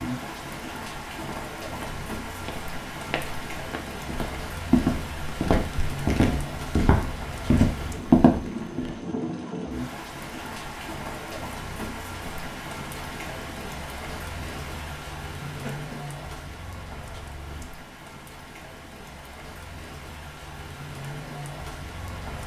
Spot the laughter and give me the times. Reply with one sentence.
The laughter can be heard from 15.4 to 15.9 s.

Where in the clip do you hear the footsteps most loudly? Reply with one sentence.
The volume of the footsteps peaks at 8 seconds.